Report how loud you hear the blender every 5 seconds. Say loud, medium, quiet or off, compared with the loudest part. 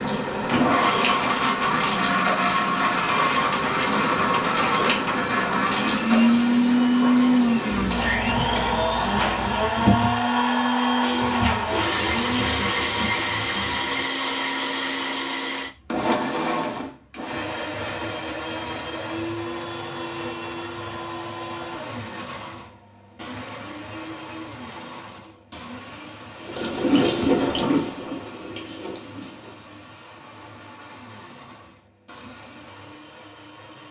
loud, loud, loud, medium, quiet, quiet, quiet.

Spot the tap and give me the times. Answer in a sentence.
The tap can be heard from 0.0 to 14.1 s and from 26.4 to 29.7 s.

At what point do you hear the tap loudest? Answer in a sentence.
The loudest moment of the tap is at 27 seconds.